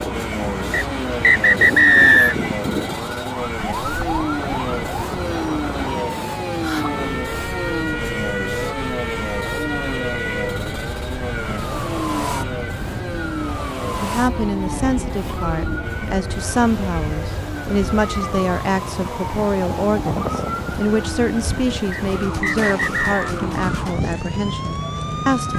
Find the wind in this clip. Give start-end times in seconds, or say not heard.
0.0-25.5.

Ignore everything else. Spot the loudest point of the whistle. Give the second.
2 s.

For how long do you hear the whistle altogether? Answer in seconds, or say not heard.
3 s.